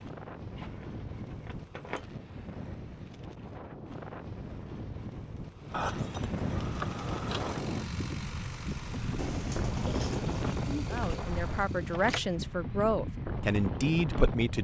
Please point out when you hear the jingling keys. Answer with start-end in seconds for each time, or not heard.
0.6-2.0, 5.7-7.6, 11.8-12.3.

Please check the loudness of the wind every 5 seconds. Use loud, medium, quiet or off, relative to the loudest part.
medium, loud, loud.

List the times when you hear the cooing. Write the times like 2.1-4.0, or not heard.
9.2-11.2.